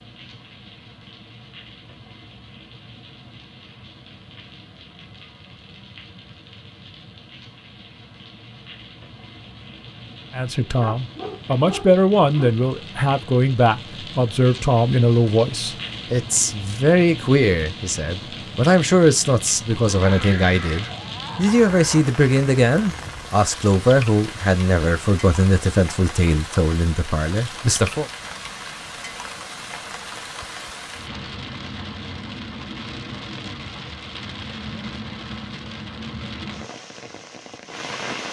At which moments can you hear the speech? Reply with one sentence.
You can hear the speech from 10.3 to 28.1 s.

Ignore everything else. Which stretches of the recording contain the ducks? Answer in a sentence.
You can't hear the ducks here.